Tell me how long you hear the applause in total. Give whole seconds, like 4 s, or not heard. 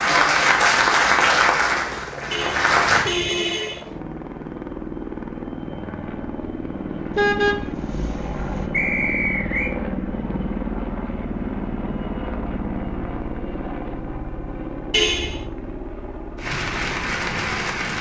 5 s.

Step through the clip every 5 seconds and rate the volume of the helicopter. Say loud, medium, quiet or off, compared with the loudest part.
medium, loud, loud, medium.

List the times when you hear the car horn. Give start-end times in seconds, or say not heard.
2.3-3.8, 7.2-8.7, 14.9-15.3.